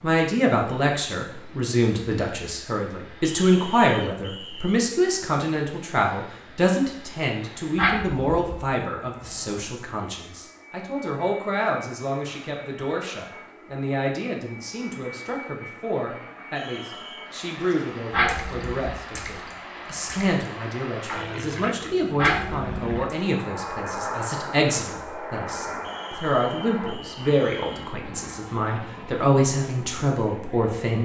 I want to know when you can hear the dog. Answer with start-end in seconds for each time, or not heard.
7.8-8.7, 18.1-19.0, 22.1-23.0.